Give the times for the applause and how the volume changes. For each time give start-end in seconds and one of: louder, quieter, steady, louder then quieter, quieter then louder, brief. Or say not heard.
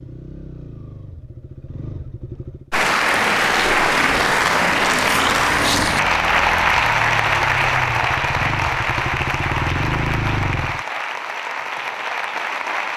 2.7-12.9 quieter.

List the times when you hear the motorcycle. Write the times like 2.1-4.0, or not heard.
0.0-2.7, 5.7-10.8.